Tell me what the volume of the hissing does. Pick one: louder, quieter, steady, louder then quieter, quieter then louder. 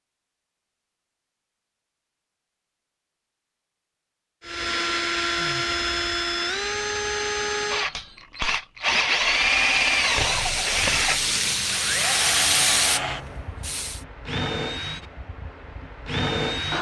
louder then quieter.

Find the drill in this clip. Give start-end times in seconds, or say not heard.
4.5-16.7.